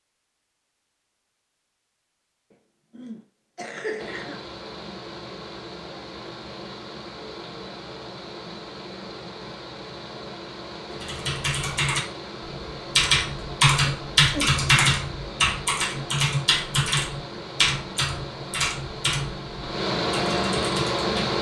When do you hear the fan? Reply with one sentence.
You can hear the fan from 4.0 to 21.3 s.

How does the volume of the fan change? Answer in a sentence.
The volume of the fan goes up.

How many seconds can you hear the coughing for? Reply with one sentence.
The coughing can be heard for 2 seconds in total.